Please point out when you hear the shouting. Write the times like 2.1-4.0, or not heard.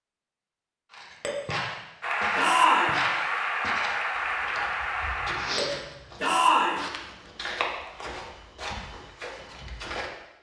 2.4-3.0, 6.2-6.8.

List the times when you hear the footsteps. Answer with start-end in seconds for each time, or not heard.
0.9-10.1.